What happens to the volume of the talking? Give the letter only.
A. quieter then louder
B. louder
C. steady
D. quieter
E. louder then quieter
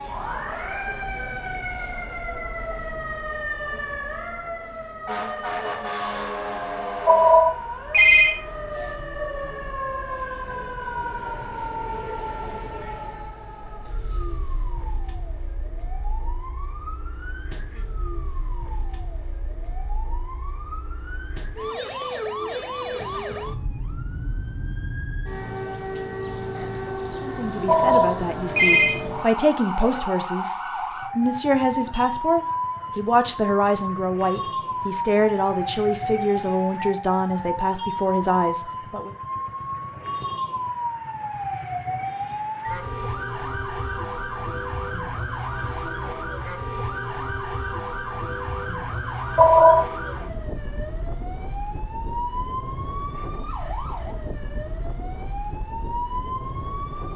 C.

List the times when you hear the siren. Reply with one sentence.
The siren can be heard from 0.0 to 57.1 s.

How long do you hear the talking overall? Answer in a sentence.
You can hear the talking for 12 seconds altogether.